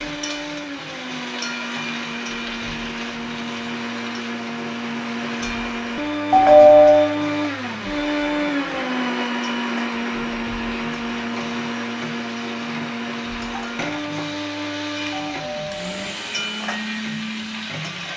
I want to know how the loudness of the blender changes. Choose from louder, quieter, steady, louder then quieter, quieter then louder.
louder then quieter.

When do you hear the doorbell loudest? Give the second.
7 s.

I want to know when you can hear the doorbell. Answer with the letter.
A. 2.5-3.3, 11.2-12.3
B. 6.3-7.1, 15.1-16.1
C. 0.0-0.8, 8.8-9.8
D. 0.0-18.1
B.